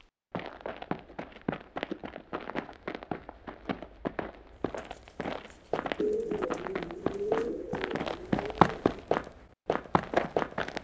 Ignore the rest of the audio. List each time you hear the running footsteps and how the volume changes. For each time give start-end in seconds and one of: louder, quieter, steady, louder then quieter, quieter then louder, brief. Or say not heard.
0.0-10.8 louder.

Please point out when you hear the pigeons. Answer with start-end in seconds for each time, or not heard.
6.0-9.1.